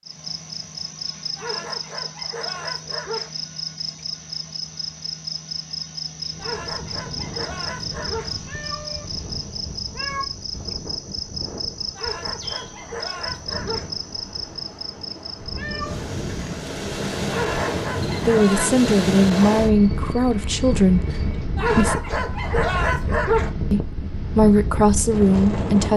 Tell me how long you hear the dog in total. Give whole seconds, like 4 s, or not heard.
9 s.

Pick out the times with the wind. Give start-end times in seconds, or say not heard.
6.1-25.9.